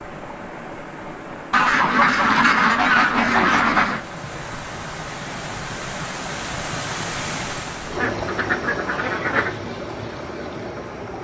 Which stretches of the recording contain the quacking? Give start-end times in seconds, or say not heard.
1.5-4.0, 8.0-9.6.